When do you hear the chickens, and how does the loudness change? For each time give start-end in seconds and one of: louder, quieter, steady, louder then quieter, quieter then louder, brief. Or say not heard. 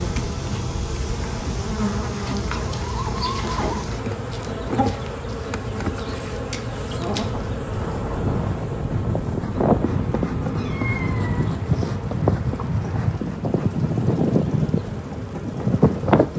2.1-7.5 quieter then louder.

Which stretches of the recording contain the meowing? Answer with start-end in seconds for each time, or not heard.
9.5-11.5.